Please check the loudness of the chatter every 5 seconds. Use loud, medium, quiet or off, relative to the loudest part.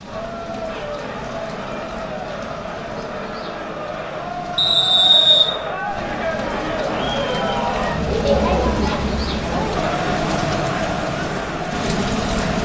medium, loud, loud.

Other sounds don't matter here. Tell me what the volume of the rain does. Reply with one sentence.
The volume of the rain goes up.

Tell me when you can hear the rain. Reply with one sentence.
The rain can be heard from 0.0 to 12.6 s.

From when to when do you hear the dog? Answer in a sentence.
You can hear the dog from 8.1 to 8.8 s.